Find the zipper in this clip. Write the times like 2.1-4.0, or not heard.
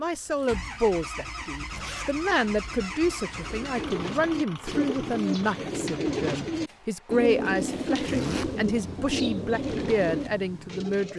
1.7-2.7, 8.1-8.5.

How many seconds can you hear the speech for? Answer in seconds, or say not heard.
11 s.